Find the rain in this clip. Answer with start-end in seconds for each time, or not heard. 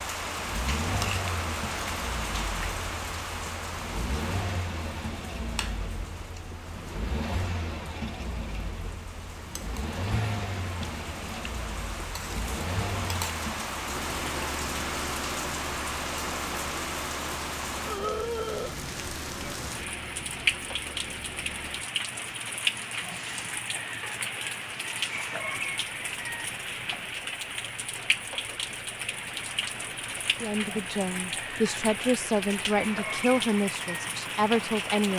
0.0-35.1.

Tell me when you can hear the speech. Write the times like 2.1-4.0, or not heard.
30.4-35.1.